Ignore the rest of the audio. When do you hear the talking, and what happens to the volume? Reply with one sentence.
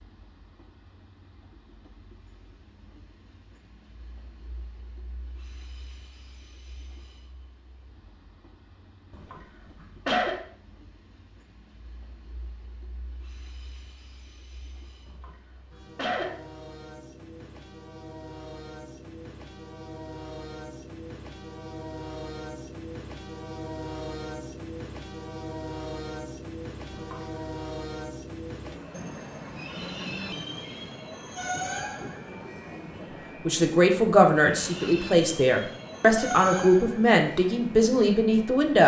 The talking can be heard from 33.5 to 38.8 s, at a steady volume.